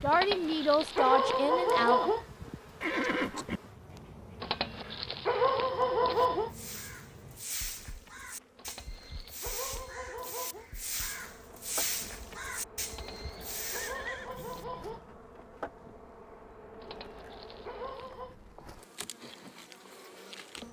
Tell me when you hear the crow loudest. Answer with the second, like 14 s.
12 s.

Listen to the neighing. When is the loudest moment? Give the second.
3 s.